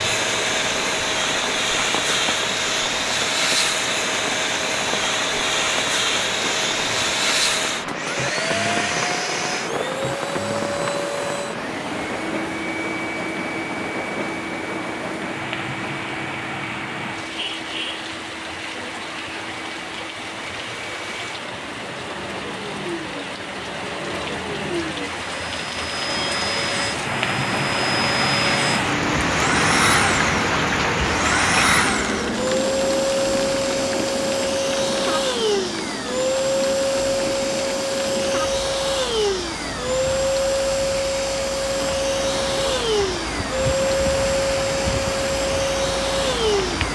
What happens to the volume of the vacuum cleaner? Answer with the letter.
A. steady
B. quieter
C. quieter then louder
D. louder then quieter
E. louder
C.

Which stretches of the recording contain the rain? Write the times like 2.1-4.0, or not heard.
0.0-46.8.